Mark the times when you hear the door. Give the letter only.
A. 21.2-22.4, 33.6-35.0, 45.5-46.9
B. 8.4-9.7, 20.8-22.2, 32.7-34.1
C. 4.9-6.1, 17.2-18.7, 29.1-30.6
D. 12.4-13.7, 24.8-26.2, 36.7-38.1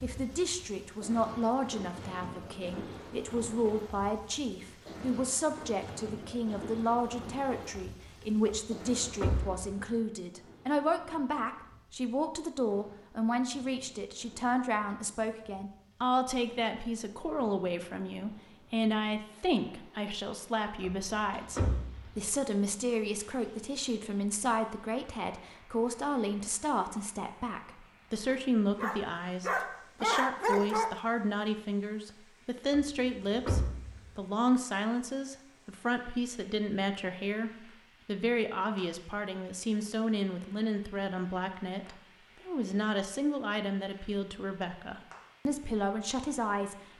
B.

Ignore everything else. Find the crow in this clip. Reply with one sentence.
The crow can't be heard in this clip.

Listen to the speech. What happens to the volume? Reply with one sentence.
The loudness of the speech stays about the same.